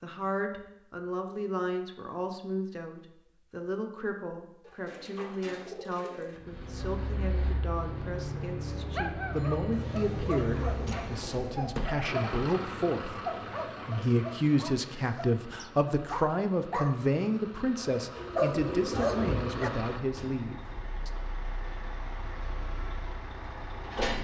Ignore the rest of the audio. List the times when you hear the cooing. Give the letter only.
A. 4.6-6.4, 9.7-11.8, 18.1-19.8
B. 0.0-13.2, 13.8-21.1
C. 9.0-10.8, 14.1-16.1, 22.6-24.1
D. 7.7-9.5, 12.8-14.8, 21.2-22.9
A.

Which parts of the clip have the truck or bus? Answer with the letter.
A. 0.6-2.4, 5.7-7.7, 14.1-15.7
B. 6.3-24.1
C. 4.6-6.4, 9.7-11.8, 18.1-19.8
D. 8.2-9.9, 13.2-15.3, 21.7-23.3
B.